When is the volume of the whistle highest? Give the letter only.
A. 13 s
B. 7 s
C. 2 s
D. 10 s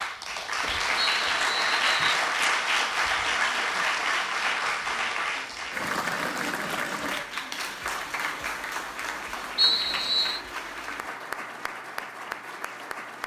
D.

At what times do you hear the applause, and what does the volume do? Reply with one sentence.
The applause can be heard from 0.0 to 13.2 s, getting quieter.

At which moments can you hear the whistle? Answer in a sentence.
You can hear the whistle from 0.9 to 2.2 s and from 9.6 to 10.4 s.